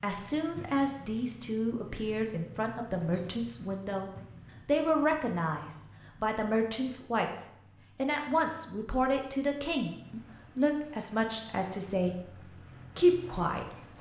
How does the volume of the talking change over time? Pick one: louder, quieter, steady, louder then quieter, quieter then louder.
steady.